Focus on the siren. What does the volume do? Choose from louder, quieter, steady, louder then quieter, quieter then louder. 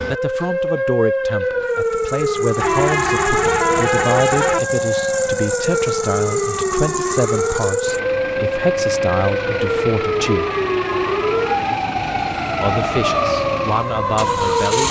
steady.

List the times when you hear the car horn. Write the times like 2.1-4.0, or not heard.
2.6-4.6, 10.2-11.8.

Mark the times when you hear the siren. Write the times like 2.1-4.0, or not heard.
0.0-14.8.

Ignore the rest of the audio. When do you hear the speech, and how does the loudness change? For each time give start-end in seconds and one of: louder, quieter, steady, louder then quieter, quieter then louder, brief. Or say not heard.
0.1-10.5 steady
12.6-14.8 brief.